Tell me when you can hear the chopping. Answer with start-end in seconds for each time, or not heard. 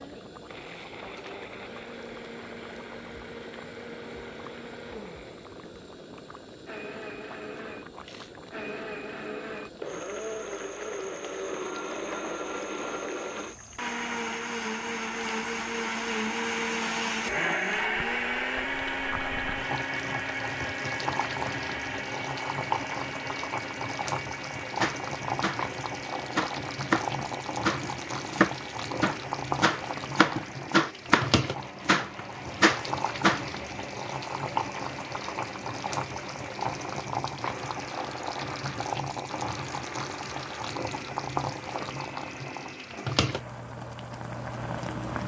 24.8-25.6, 26.3-33.5.